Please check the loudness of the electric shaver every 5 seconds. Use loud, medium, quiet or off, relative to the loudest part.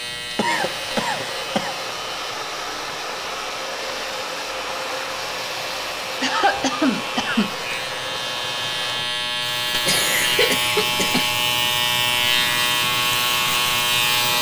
quiet, medium, loud.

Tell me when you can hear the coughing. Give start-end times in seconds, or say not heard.
0.3-1.8, 6.2-7.5, 9.8-11.3.